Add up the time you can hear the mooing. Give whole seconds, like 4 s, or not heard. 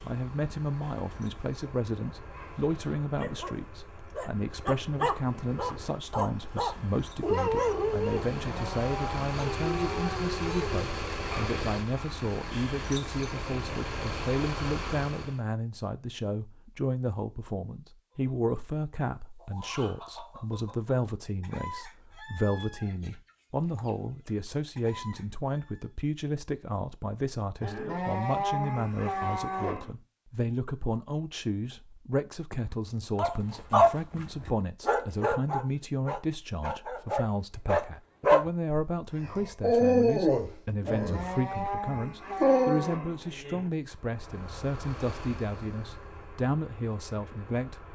7 s.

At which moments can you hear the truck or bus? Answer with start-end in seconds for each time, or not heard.
0.0-15.4, 43.8-47.8.